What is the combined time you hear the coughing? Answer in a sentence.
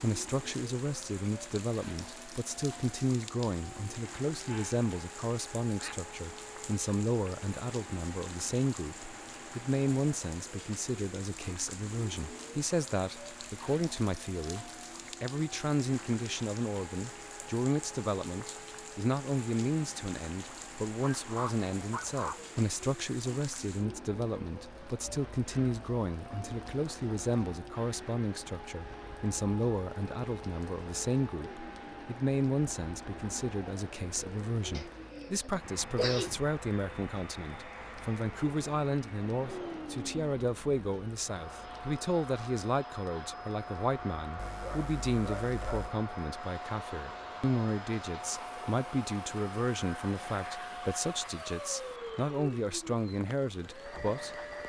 You can hear the coughing for 2 seconds altogether.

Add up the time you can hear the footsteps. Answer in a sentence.
You can't hear the footsteps here.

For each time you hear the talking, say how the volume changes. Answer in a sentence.
You can hear the talking from 0.0 to 54.4 s, at a steady volume.